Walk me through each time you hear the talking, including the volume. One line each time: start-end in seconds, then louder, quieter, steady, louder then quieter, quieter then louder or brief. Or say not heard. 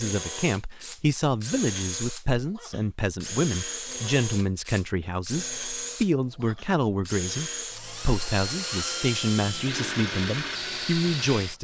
0.0-11.5 steady.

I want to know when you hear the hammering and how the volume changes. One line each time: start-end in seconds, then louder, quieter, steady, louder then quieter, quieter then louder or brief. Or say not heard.
not heard.